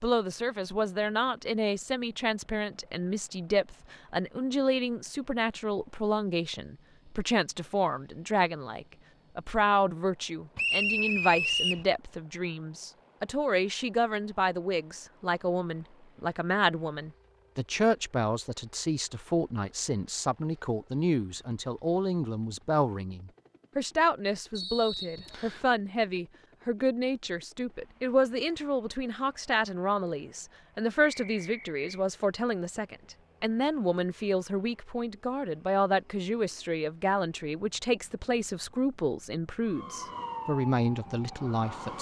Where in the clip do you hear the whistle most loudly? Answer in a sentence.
The volume of the whistle peaks at 11 seconds.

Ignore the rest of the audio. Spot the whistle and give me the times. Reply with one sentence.
You can hear the whistle from 10.6 to 11.8 s, from 24.6 to 25.6 s and from 31.0 to 31.8 s.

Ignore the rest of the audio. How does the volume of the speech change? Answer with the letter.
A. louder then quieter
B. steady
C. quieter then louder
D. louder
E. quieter
B.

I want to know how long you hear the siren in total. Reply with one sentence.
The siren can be heard for 2 seconds in total.